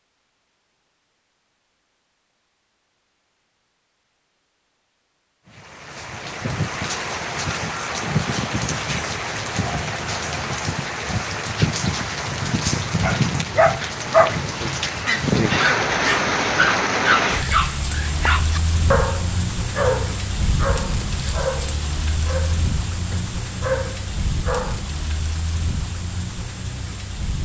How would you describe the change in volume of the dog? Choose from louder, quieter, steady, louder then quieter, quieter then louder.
quieter.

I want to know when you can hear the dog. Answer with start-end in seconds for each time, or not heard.
13.0-24.8.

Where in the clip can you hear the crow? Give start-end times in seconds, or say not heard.
not heard.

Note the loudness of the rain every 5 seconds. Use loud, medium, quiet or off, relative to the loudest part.
off, loud, loud, loud, medium, medium.